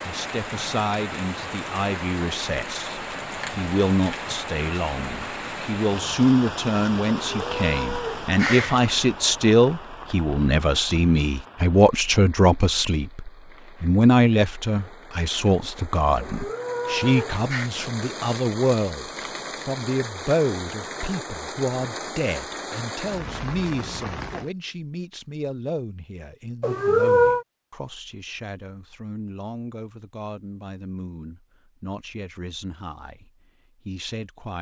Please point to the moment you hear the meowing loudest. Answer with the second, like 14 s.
27 s.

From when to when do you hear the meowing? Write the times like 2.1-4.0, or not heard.
7.3-8.8, 16.2-17.7, 26.6-27.4.